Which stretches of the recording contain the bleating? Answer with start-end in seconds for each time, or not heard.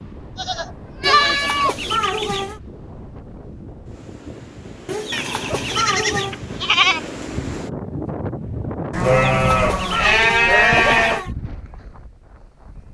0.3-1.9, 5.1-7.1, 8.9-11.2.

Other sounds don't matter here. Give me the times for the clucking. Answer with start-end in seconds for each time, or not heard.
1.0-2.6, 4.8-6.4, 9.0-11.3.